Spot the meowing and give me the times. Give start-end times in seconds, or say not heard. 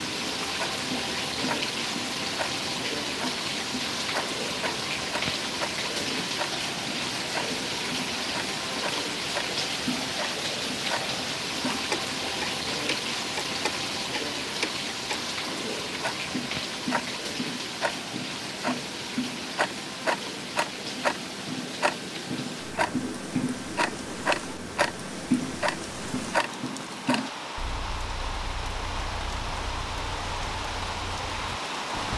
not heard.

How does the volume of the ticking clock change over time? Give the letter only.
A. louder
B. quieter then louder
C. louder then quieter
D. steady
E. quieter
C.